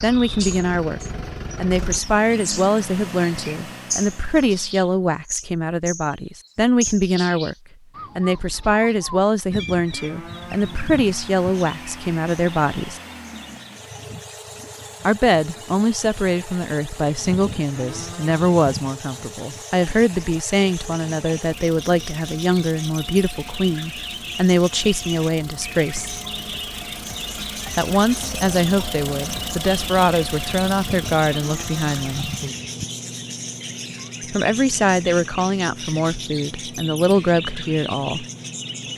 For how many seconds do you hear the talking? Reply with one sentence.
The talking can be heard for 31 seconds in total.